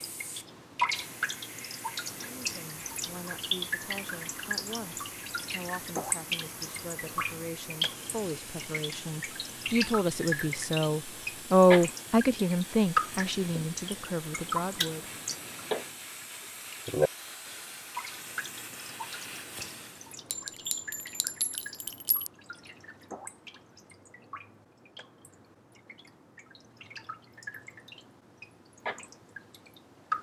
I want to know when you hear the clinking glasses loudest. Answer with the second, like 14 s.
21 s.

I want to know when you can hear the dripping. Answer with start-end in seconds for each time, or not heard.
0.0-30.1.